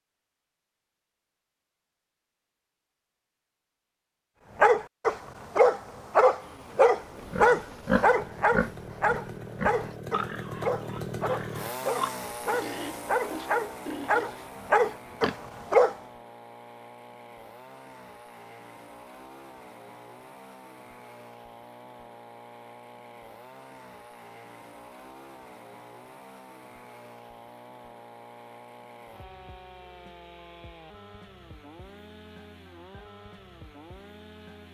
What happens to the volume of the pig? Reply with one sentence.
The volume of the pig goes down.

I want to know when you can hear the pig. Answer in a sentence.
The pig can be heard from 7.3 to 15.4 s.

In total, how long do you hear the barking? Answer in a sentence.
You can hear the barking for 11 seconds altogether.